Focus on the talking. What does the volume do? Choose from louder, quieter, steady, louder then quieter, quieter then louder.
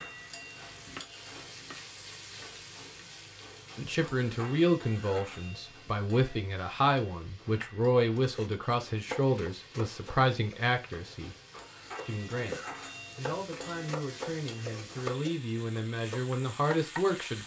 quieter then louder.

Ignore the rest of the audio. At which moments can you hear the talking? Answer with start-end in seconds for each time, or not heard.
3.8-11.3, 12.1-17.4.